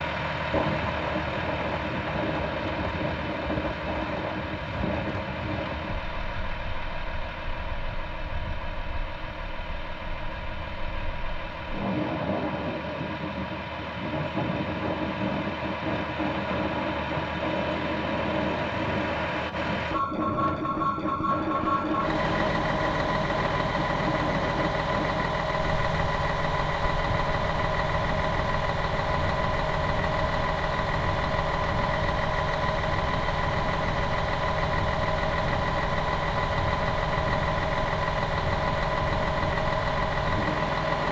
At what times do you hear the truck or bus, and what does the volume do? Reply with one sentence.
The truck or bus can be heard from 0.0 to 41.0 s, getting louder.